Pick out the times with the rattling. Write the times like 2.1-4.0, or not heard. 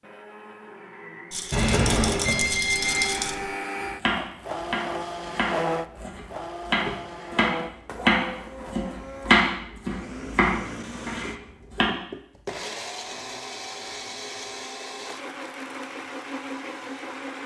1.3-3.4.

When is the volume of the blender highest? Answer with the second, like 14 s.
5 s.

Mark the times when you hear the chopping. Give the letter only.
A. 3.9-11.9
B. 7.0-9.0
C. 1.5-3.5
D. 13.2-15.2
A.